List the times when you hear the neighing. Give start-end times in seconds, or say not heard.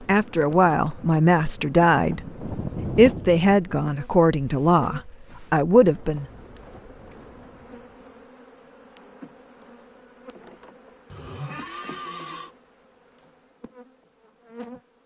11.1-12.5.